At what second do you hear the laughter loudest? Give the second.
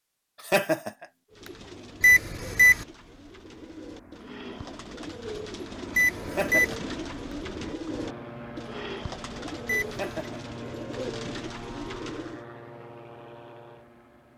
1 s.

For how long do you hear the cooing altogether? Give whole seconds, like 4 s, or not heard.
11 s.